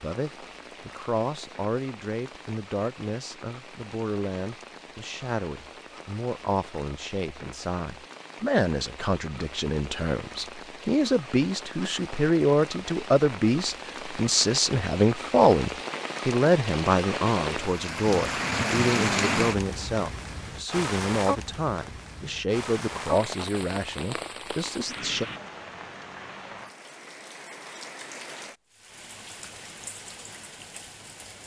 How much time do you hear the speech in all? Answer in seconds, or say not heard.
25 s.